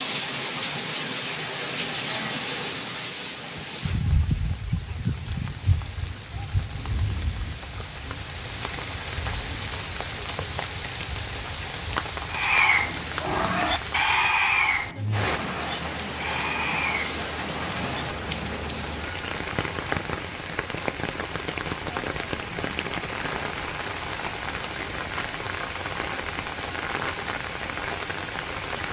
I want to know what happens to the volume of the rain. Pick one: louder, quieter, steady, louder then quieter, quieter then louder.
steady.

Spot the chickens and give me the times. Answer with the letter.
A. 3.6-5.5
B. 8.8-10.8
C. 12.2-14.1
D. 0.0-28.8
A.